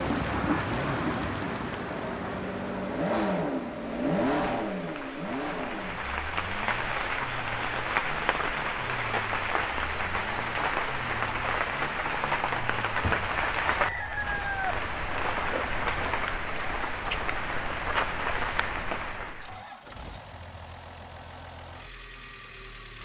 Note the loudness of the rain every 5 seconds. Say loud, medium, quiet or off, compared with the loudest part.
loud, loud, loud, loud, off.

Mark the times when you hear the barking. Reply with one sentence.
The barking can't be heard in this clip.